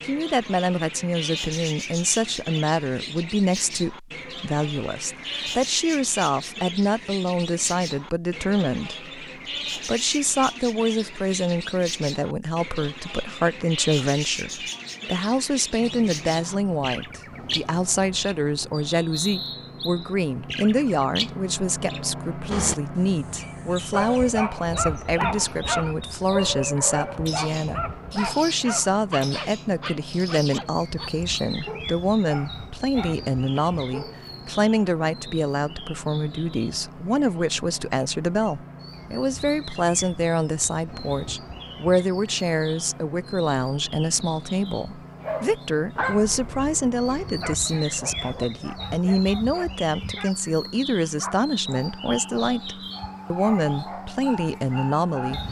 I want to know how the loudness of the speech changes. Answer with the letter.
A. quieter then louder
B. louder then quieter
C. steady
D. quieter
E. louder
C.